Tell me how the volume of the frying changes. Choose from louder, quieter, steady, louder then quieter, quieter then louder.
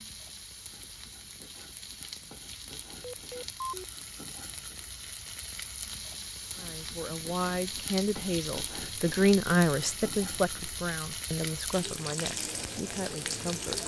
louder.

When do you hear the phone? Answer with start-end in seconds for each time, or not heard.
3.0-3.9.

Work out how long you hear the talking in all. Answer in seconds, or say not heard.
7 s.